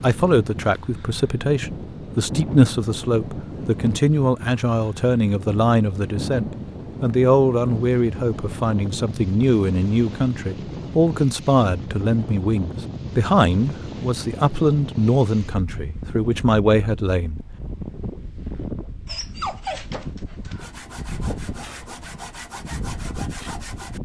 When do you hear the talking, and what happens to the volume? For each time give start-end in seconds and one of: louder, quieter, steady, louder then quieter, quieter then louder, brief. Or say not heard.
0.0-17.4 steady.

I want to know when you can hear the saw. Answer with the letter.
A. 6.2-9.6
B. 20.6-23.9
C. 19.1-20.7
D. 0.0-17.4
B.